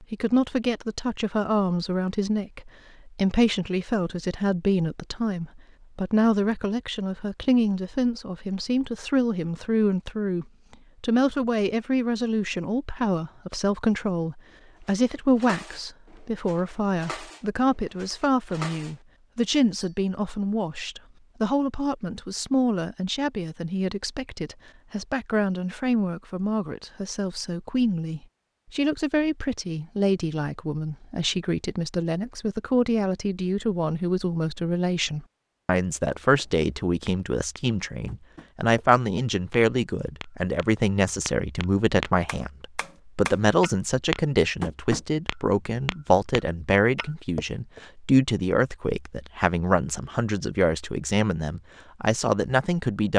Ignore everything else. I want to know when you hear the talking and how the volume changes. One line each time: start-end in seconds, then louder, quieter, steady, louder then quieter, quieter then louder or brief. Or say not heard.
0.0-53.1 steady.